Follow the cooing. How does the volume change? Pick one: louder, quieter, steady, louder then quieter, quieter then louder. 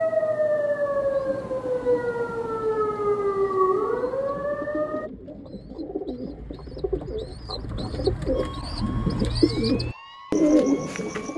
louder.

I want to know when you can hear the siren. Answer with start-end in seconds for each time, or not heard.
0.0-5.1, 8.3-11.3.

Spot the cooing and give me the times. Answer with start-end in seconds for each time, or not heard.
1.0-11.3.